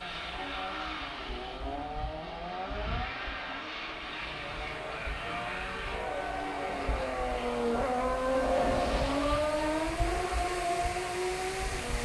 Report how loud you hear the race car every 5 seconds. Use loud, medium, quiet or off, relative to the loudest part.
medium, loud, loud.